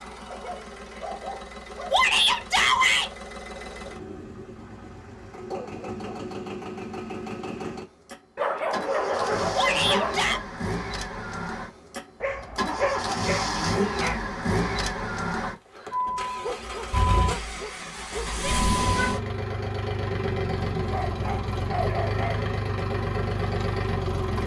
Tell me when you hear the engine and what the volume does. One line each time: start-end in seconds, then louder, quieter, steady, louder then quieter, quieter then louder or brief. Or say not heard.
0.0-24.4 louder.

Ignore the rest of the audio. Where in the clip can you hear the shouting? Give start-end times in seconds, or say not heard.
1.9-3.1, 9.5-10.4, 18.4-19.1.